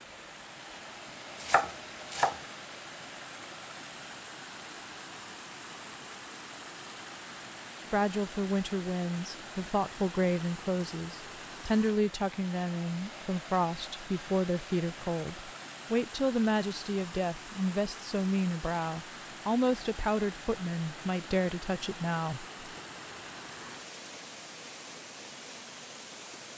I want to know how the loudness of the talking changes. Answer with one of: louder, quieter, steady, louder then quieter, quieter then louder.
steady.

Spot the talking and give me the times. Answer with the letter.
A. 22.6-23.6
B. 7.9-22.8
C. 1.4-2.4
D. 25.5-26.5
B.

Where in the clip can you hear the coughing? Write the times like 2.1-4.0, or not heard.
not heard.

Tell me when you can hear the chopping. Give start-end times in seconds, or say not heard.
1.4-2.4.